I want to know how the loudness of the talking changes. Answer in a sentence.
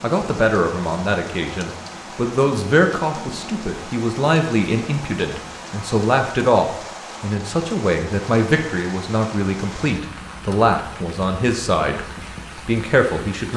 The loudness of the talking stays about the same.